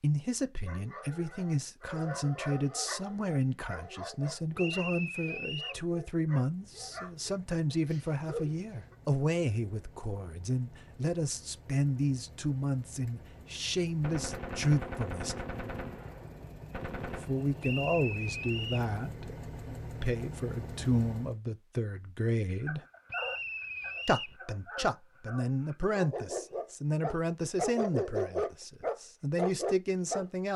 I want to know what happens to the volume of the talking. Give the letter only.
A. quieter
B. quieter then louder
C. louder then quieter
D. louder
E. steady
E.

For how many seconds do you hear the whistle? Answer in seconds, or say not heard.
4 s.